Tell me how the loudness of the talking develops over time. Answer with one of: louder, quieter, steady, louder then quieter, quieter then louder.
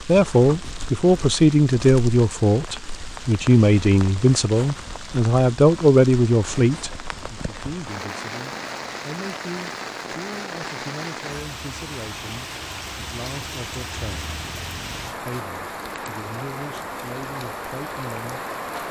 quieter.